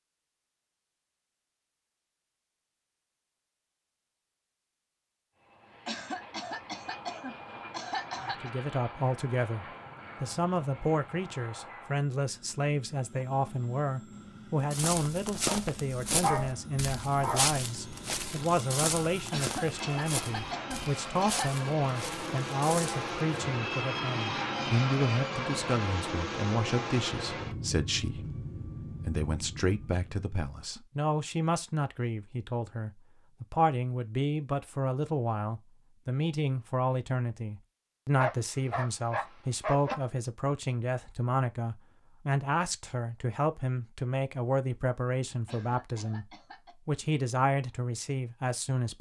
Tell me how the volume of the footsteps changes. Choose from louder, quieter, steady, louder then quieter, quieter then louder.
quieter.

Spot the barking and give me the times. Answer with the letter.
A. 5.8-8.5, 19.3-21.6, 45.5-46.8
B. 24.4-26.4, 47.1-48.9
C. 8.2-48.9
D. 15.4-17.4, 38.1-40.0
D.